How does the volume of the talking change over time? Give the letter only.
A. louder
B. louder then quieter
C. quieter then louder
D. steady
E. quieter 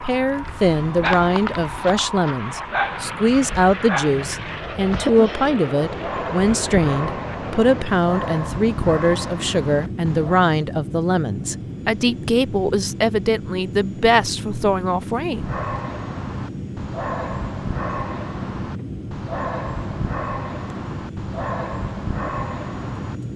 D.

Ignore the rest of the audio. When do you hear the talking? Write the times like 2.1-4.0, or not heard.
0.0-15.5.